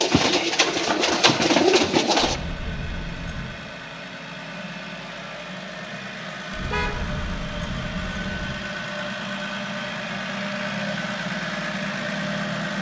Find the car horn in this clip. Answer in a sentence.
The car horn can be heard from 6.6 to 7.0 s.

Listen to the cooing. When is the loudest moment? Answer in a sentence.
The volume of the cooing peaks at 2 seconds.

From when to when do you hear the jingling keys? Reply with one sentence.
You can hear the jingling keys from 2.1 to 3.6 s and from 6.5 to 8.6 s.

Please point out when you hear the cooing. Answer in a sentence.
You can hear the cooing from 0.0 to 2.4 s.